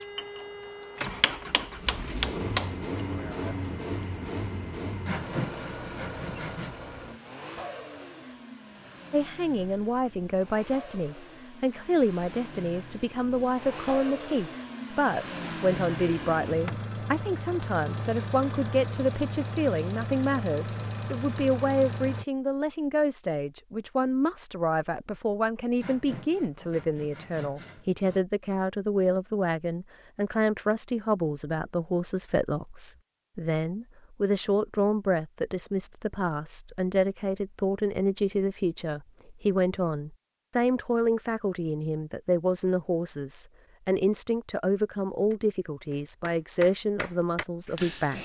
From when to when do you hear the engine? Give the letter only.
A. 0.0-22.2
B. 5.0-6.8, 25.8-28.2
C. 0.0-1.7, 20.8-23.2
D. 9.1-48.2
A.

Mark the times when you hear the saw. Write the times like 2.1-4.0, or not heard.
5.0-6.8, 25.8-28.2.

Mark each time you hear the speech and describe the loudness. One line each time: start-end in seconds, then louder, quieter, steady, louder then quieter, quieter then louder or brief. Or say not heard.
9.1-48.2 steady.